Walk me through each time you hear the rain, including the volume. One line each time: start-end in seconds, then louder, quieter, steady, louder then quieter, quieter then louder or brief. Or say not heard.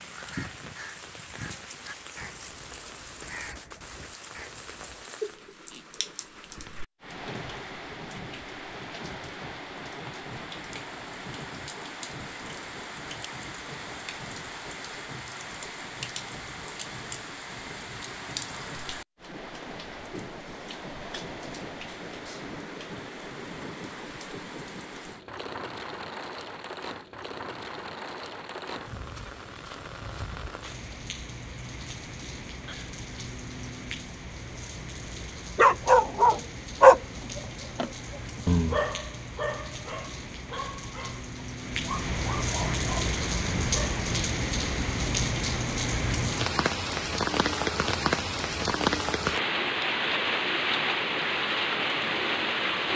0.0-52.9 louder.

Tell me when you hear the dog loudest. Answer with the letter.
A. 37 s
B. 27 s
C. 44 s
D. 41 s
A.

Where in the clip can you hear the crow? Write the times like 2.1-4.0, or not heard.
0.0-5.1.